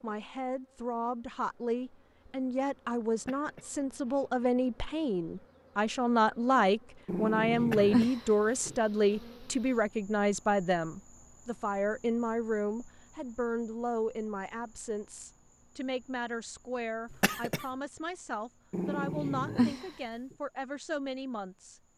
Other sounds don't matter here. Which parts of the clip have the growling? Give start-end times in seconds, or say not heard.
7.0-8.8, 18.7-19.9.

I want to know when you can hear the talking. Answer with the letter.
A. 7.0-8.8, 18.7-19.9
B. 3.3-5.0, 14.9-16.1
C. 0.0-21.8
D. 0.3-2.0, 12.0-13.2
C.